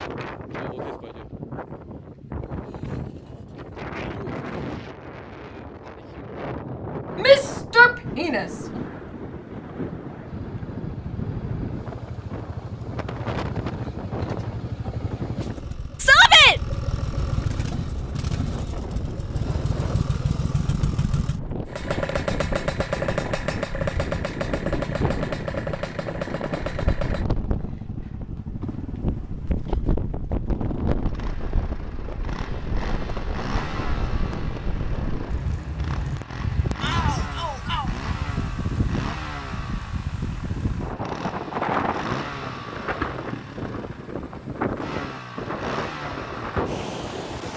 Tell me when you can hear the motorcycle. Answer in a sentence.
The motorcycle can be heard from 10.2 to 47.5 s.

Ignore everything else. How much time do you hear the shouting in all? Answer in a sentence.
The shouting can be heard for 3 seconds in total.